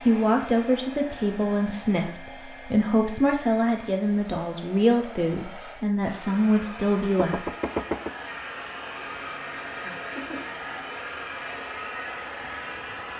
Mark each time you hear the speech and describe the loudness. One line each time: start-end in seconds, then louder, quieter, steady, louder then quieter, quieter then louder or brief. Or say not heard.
0.0-7.5 steady.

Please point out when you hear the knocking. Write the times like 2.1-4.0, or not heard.
7.2-8.2.